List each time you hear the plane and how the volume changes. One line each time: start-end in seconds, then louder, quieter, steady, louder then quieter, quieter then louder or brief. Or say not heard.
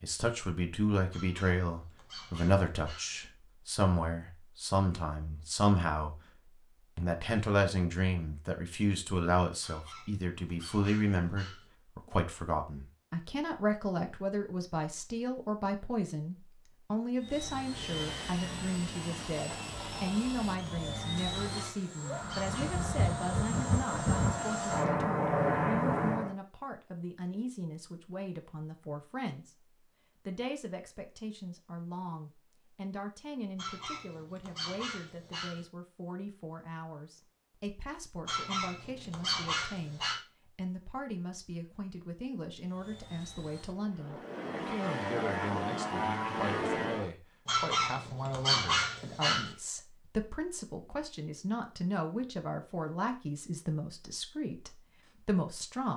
17.1-26.4 louder
42.6-47.1 louder.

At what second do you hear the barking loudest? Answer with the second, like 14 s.
49 s.